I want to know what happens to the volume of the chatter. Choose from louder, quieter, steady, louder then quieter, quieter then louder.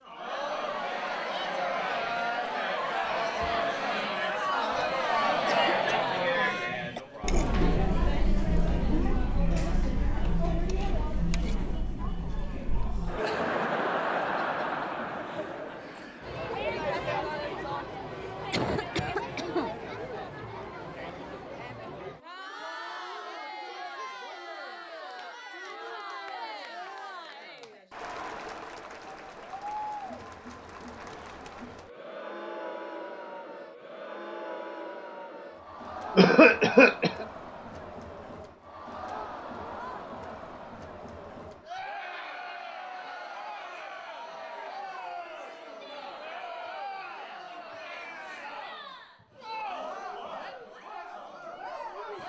quieter.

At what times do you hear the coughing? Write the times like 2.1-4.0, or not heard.
4.8-7.0, 18.5-19.7, 36.1-37.2.